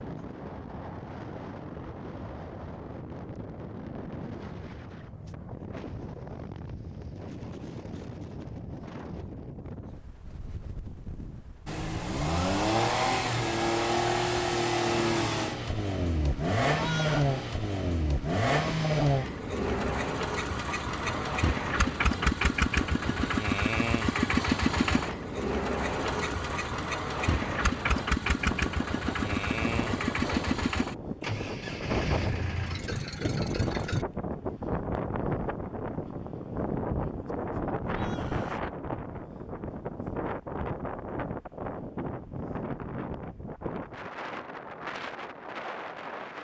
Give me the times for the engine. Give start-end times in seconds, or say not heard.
11.7-34.0.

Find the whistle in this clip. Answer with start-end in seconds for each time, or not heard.
not heard.